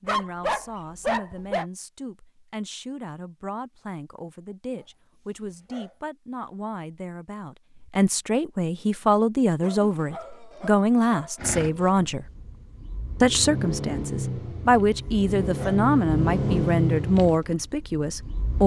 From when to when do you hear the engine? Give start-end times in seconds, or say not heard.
11.3-18.6.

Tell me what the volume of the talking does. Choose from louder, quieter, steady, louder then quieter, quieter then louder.
louder.